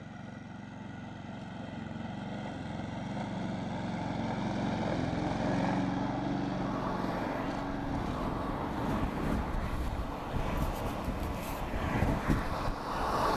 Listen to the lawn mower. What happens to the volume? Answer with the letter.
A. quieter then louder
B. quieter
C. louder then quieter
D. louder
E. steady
C.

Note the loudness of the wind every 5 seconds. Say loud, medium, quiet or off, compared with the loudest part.
off, loud, loud.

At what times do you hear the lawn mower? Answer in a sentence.
The lawn mower can be heard from 0.0 to 13.3 s.